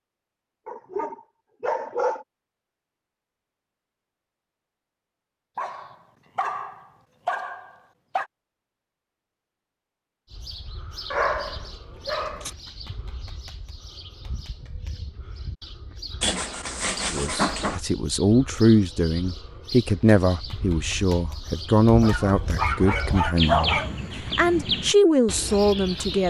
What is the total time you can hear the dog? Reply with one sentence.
The dog can be heard for 9 seconds in total.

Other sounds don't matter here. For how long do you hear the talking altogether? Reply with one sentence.
The talking can be heard for 9 seconds in total.